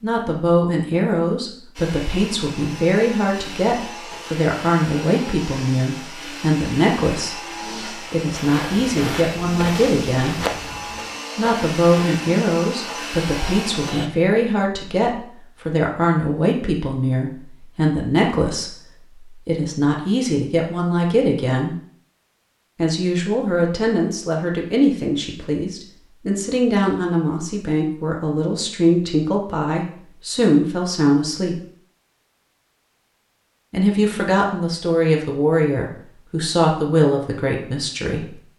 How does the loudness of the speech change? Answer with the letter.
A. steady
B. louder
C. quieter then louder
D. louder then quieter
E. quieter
A.